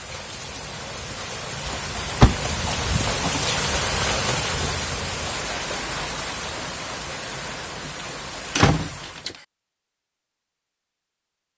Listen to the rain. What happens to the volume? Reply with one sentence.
The loudness of the rain goes up, then down.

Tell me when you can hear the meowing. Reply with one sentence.
The meowing can't be heard in this clip.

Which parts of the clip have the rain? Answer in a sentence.
The rain can be heard from 0.0 to 9.3 s.